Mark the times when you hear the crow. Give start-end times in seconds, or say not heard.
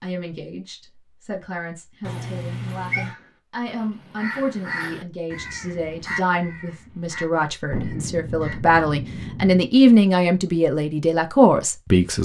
3.0-8.6.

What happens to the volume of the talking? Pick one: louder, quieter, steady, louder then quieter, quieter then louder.
louder.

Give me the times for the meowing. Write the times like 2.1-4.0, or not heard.
2.0-3.1.